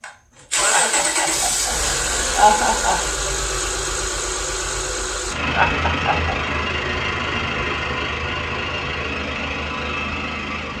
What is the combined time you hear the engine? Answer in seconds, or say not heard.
11 s.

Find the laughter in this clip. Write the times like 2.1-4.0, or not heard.
0.7-3.0, 5.5-6.3.